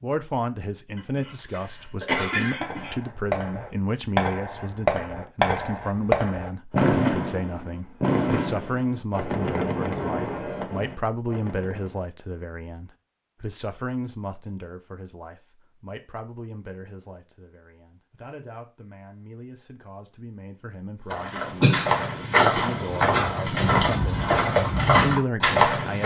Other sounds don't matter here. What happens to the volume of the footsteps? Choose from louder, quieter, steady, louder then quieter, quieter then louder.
louder.